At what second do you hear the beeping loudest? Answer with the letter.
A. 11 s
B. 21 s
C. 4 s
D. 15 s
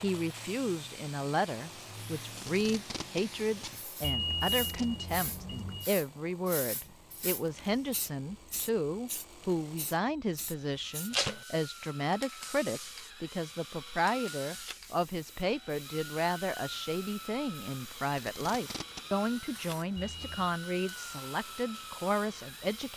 C.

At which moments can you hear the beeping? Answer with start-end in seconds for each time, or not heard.
4.0-5.9, 19.9-20.6.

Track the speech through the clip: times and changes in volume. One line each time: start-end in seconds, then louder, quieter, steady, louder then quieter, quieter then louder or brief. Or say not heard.
0.0-22.9 steady.